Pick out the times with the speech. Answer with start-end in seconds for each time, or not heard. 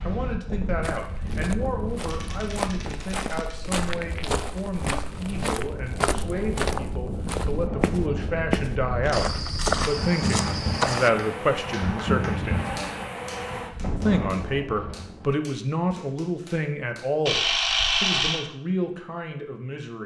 0.0-12.7, 14.0-20.0.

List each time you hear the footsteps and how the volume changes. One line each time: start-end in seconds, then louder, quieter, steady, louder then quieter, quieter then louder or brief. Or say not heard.
0.8-11.1 louder.